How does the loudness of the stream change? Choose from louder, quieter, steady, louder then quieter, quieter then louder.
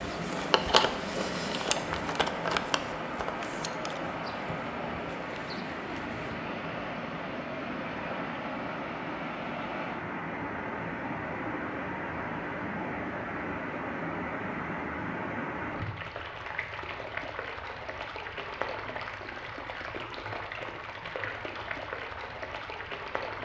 steady.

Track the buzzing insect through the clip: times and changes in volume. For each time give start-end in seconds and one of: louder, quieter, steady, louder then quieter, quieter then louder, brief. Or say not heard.
0.0-6.4 quieter.